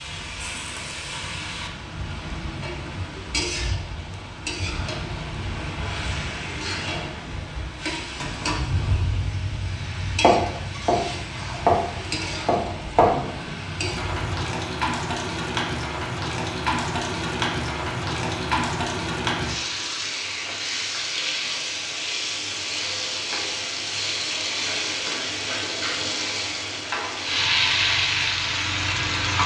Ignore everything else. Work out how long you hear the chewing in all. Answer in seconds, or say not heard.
not heard.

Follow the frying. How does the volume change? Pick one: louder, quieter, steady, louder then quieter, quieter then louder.
louder.